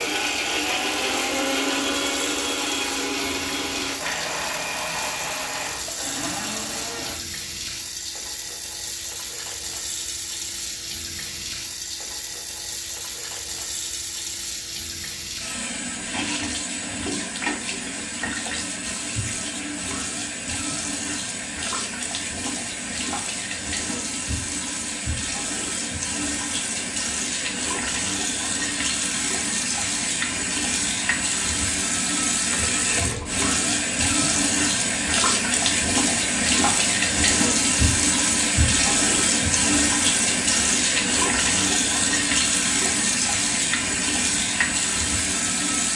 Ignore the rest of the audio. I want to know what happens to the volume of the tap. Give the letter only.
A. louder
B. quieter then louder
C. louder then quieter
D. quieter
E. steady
A.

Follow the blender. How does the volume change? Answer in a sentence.
The volume of the blender goes down.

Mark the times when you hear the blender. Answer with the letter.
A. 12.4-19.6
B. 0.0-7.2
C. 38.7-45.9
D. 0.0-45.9
B.